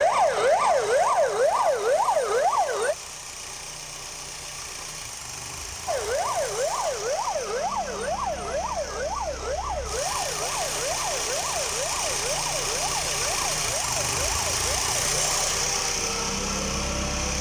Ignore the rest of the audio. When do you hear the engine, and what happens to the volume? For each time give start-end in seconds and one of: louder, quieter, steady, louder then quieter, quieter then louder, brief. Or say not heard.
0.0-17.3 louder.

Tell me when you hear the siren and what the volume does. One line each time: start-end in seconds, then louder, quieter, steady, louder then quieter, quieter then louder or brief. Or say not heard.
0.0-3.0 brief
5.8-17.3 quieter.